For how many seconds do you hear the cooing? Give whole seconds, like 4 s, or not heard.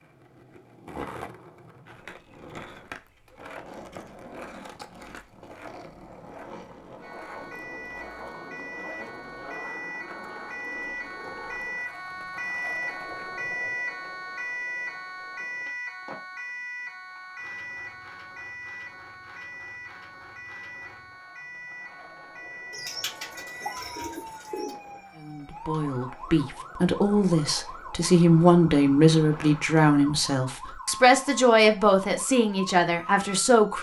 2 s.